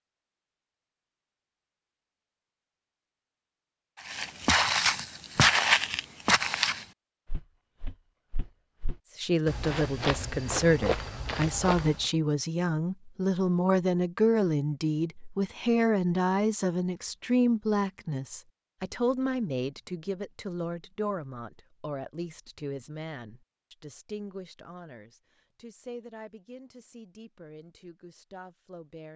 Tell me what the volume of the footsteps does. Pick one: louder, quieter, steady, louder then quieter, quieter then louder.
quieter then louder.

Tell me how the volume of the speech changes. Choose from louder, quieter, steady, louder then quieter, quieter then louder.
quieter.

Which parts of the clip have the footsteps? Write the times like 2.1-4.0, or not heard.
4.0-12.1.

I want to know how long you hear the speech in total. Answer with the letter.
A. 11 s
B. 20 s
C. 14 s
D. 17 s
B.